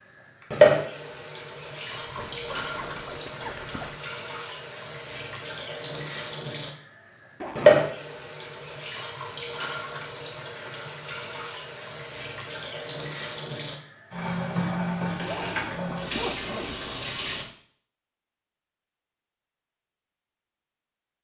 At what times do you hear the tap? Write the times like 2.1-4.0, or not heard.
0.0-17.4.